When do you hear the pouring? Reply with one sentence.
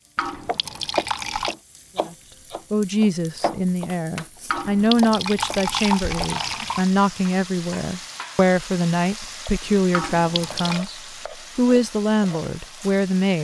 You can hear the pouring from 0.1 to 1.6 s, from 4.5 to 6.9 s and from 9.9 to 10.9 s.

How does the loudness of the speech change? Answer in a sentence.
The loudness of the speech stays about the same.